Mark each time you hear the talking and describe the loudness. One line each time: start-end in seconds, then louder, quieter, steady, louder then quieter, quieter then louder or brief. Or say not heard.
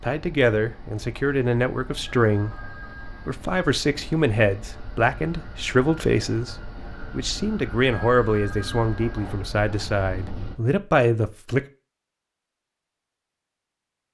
0.0-11.7 steady.